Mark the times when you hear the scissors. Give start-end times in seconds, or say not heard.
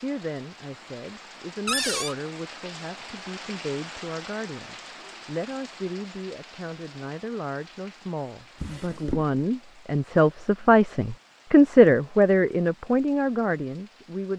not heard.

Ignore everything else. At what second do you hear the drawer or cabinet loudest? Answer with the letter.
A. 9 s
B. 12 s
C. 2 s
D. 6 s
C.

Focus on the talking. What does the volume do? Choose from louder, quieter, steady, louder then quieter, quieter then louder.
louder.